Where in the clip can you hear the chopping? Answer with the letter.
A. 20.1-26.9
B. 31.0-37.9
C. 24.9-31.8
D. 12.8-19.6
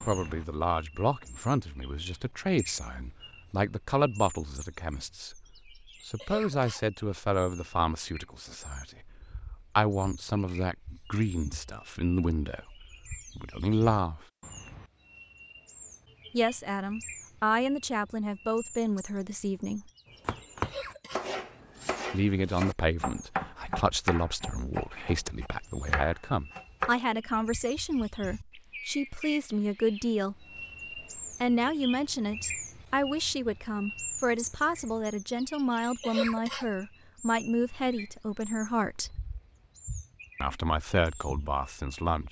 A.